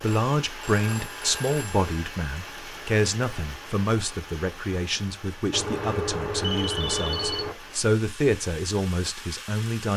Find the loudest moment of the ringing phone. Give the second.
7 s.